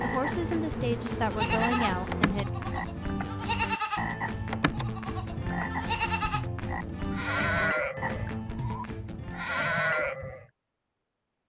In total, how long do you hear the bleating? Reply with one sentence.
The bleating can be heard for 9 seconds in total.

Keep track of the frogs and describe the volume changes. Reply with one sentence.
The loudness of the frogs stays about the same.